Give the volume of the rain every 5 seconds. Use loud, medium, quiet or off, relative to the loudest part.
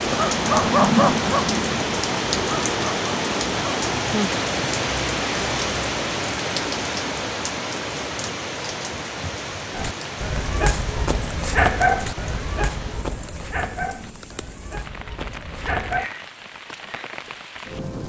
loud, loud, quiet, quiet.